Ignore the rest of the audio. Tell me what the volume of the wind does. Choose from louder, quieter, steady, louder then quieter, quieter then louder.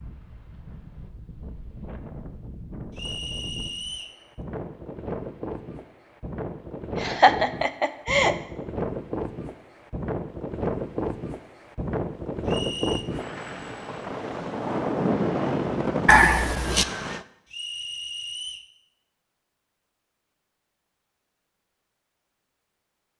louder.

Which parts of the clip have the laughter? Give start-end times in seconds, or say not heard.
7.0-8.3, 16.1-16.9.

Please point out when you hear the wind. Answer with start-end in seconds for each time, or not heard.
0.0-17.2.